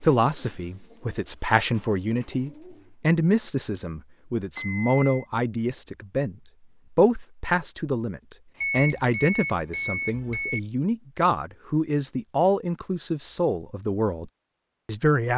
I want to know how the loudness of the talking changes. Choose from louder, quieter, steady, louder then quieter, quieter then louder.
steady.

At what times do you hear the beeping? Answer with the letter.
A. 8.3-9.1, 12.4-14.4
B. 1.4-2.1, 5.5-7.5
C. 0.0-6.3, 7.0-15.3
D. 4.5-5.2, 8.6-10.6
D.